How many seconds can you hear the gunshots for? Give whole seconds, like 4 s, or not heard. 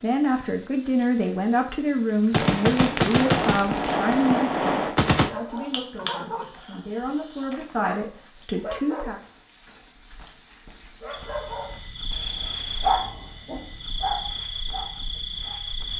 3 s.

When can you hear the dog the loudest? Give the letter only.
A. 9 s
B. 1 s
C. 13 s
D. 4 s
C.